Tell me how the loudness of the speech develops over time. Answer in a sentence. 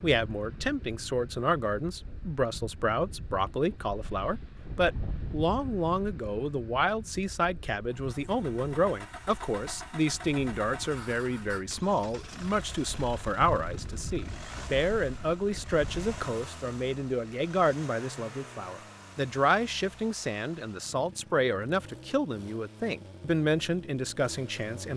The loudness of the speech stays about the same.